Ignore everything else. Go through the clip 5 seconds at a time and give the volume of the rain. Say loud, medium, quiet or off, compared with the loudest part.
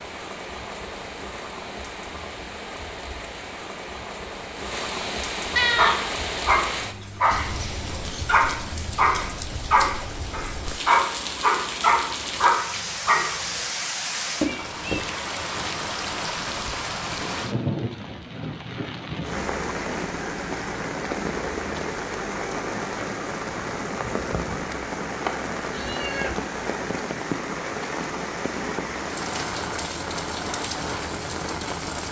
medium, loud, loud, loud, loud, loud, loud.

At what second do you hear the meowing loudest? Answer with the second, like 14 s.
6 s.